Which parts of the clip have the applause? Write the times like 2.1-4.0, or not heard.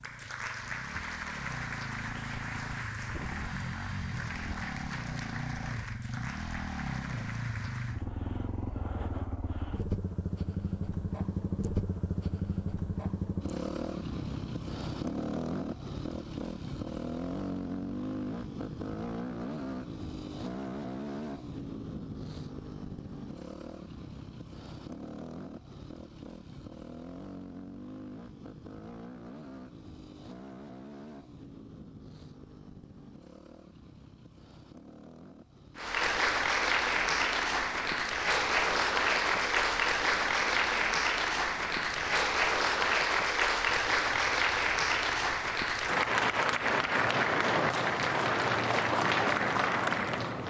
0.0-8.1, 35.8-50.4.